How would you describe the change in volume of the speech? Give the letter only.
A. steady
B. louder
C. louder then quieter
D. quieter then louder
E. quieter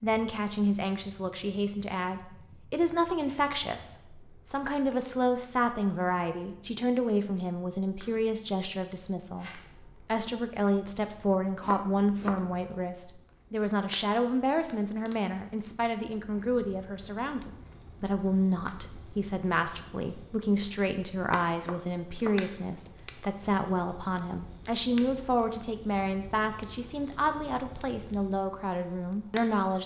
A.